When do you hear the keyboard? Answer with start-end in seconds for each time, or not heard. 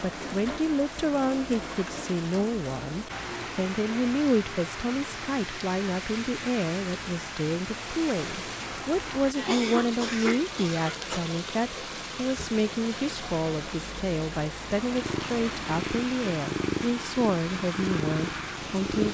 not heard.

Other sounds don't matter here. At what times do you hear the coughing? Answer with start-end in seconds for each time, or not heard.
9.3-11.2.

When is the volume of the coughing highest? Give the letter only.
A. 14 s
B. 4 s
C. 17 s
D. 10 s
D.